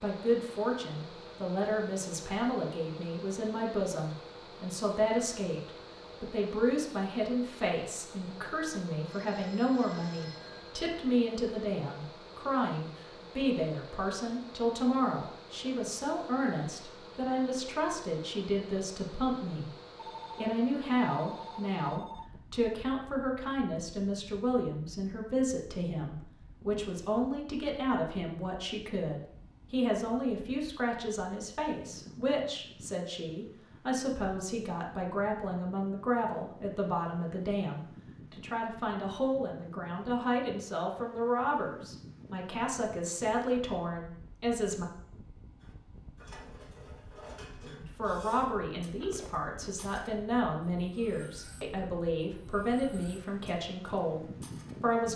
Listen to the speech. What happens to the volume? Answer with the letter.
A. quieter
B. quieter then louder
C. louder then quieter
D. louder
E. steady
E.